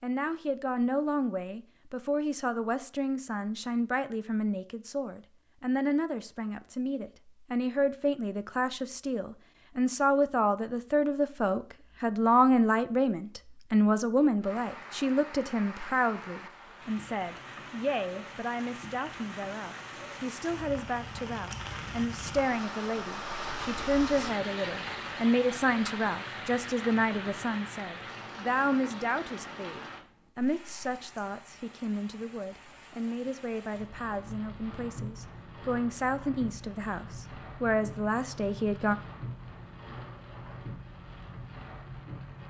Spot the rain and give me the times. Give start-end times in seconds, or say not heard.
14.4-42.4.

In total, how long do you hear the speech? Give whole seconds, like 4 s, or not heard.
39 s.